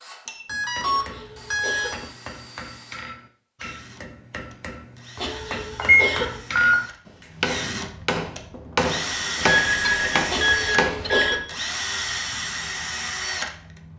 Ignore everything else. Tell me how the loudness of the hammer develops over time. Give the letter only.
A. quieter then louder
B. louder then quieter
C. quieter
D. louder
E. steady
D.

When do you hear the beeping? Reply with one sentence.
The beeping can be heard from 0.2 to 2.0 s, from 5.8 to 6.8 s and from 9.3 to 11.4 s.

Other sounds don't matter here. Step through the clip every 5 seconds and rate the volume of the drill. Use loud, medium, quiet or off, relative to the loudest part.
quiet, loud, loud.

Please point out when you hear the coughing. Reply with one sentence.
The coughing can be heard from 0.8 to 2.0 s, from 5.2 to 6.4 s and from 10.2 to 11.4 s.